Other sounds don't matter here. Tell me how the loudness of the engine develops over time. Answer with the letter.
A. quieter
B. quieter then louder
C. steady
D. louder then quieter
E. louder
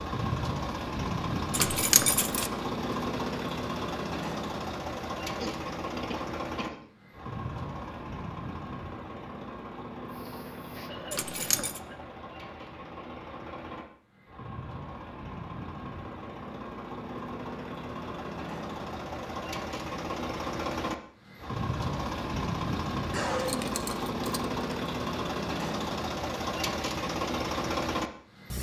B.